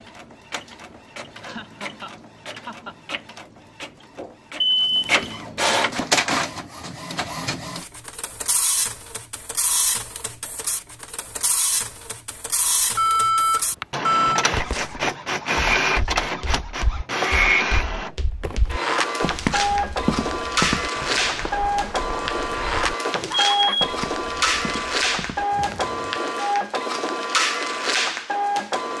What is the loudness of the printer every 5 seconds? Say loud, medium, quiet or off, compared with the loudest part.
quiet, loud, medium, loud, loud, loud.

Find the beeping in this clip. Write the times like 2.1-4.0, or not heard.
4.6-5.2, 12.9-14.4, 23.5-24.8.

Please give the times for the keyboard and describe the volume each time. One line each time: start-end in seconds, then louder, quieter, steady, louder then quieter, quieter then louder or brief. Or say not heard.
not heard.